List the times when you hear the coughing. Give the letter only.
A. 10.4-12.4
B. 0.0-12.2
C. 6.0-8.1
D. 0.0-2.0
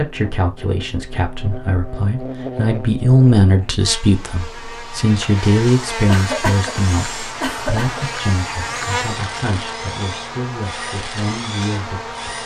C.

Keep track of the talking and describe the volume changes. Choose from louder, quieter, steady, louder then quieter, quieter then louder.
louder then quieter.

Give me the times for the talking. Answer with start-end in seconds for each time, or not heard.
0.0-12.2.